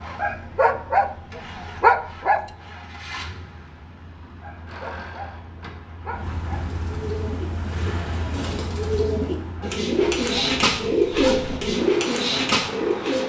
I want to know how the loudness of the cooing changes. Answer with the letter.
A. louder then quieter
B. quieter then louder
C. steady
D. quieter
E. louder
E.